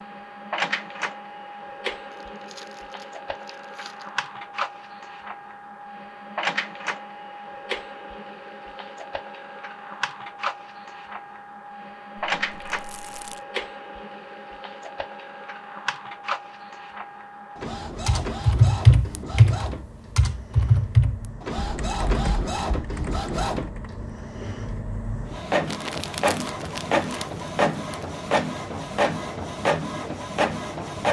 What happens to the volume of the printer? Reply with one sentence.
The loudness of the printer goes up.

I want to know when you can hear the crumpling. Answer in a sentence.
You can hear the crumpling from 2.1 to 4.1 s, from 12.3 to 13.4 s and from 25.6 to 28.1 s.